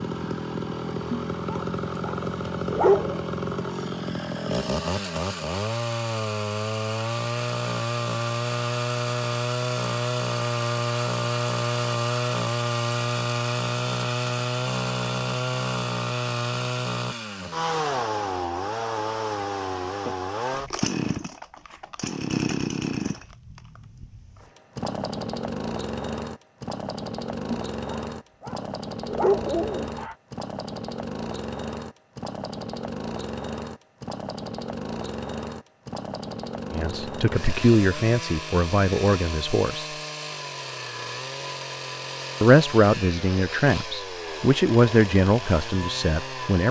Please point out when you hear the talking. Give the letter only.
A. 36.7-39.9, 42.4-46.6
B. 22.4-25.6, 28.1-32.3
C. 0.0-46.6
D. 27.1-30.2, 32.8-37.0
A.